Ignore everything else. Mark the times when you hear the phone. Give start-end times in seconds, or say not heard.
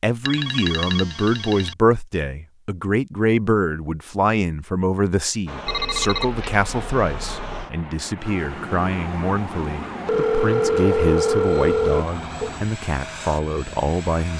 0.2-1.8, 5.7-7.7, 10.1-12.5.